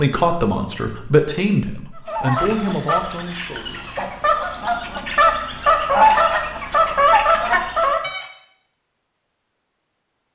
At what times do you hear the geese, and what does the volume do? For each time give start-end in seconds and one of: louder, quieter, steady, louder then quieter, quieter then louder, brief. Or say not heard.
1.9-8.2 louder.